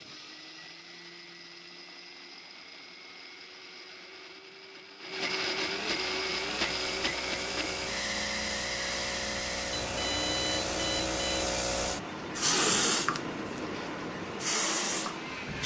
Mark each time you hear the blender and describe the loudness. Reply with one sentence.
You can hear the blender from 0.0 to 15.6 s, getting louder then quieter.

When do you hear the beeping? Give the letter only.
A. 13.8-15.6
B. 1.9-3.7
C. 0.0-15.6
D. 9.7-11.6
D.